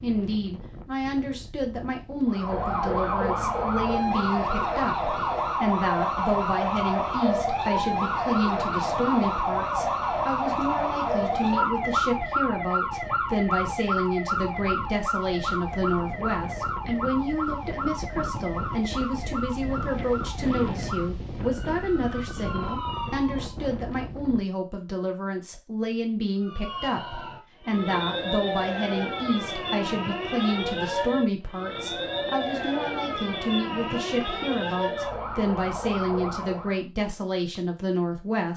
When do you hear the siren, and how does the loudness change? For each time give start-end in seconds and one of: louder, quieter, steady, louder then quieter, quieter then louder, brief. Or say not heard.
2.2-23.6 quieter
26.4-36.8 steady.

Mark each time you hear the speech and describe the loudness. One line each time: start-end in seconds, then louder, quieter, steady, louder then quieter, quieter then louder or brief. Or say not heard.
0.0-38.5 steady.